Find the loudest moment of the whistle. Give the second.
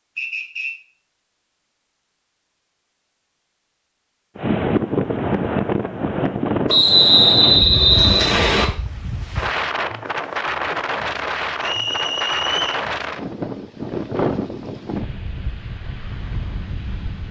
7 s.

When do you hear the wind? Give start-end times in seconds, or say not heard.
4.3-17.2.